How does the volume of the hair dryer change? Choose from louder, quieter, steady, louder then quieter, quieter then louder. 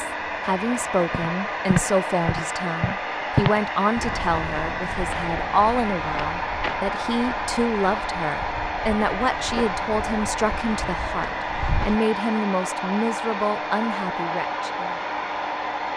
steady.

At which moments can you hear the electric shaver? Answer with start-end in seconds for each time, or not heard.
not heard.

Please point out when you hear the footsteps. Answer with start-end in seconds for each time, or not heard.
1.1-12.0.